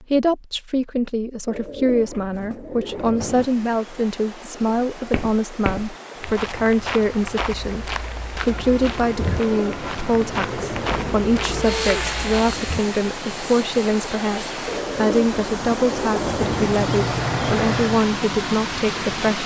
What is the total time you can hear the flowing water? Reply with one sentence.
You can hear the flowing water for 16 seconds altogether.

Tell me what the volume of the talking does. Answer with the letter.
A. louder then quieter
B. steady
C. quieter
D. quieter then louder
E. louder
B.